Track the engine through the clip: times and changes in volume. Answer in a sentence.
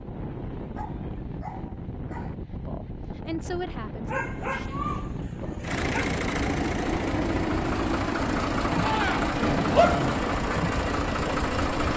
You can hear the engine from 5.6 to 11.9 s, at a steady volume.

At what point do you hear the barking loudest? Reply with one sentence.
The volume of the barking peaks at 10 seconds.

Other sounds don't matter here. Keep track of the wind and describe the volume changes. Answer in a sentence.
The volume of the wind stays about the same.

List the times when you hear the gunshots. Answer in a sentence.
You can hear the gunshots from 8.8 to 10.2 s.